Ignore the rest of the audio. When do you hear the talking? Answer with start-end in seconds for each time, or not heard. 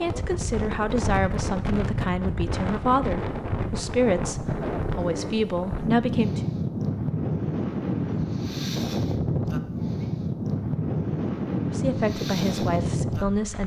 0.0-6.5, 11.7-13.6.